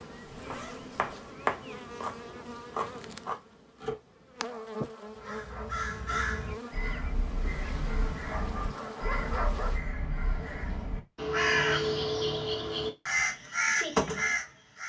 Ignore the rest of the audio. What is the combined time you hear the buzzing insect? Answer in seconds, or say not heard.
10 s.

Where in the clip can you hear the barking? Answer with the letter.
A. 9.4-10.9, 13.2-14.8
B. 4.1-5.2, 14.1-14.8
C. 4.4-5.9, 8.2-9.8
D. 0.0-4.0
C.